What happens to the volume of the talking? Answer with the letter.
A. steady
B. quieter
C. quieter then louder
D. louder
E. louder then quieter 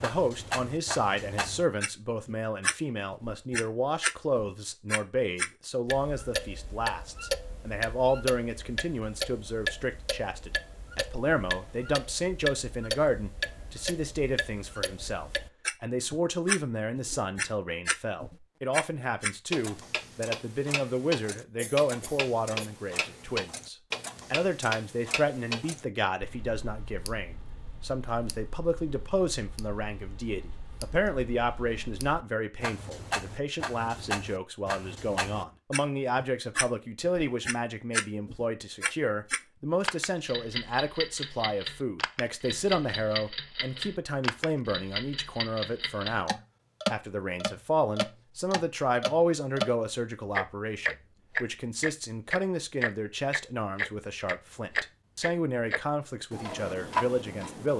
A.